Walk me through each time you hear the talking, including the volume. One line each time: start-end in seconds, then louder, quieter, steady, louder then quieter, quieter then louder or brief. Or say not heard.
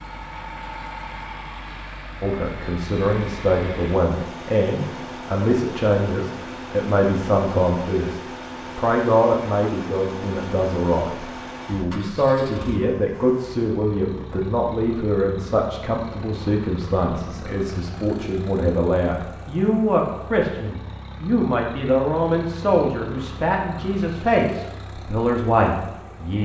2.2-26.4 steady.